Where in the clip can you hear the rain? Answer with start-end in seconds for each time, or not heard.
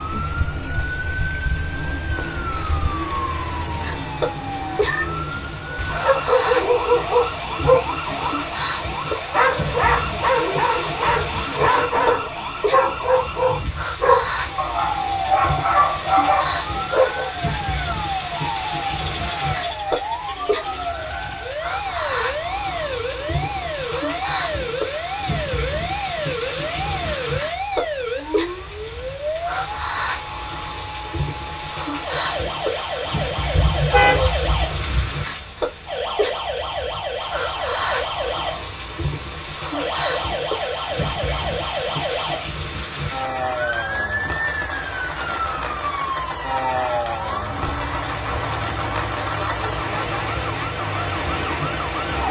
0.0-52.2.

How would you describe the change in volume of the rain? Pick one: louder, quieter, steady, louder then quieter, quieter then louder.
steady.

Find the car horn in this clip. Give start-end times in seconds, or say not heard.
33.5-35.1.